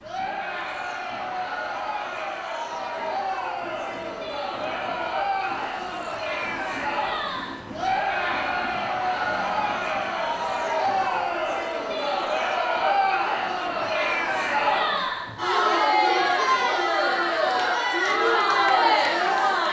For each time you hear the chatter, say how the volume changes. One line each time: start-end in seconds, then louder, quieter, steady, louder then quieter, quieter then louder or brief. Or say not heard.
0.0-19.6 louder.